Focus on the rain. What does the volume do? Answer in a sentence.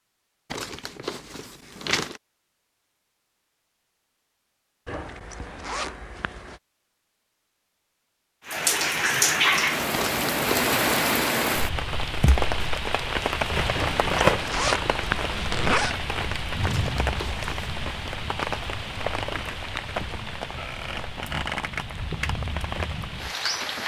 The volume of the rain goes down.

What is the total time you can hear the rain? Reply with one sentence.
The rain can be heard for 15 seconds in total.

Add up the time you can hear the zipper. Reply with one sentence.
The zipper can be heard for 4 seconds in total.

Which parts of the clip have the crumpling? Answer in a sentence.
The crumpling can be heard from 0.5 to 2.2 s, from 9.9 to 10.8 s and from 16.6 to 17.7 s.